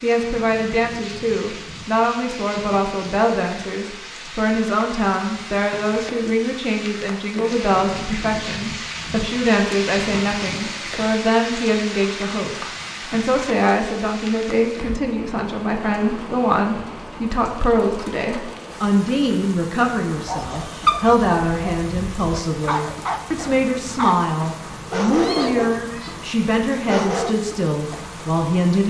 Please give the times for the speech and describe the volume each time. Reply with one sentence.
You can hear the speech from 0.0 to 28.8 s, at a steady volume.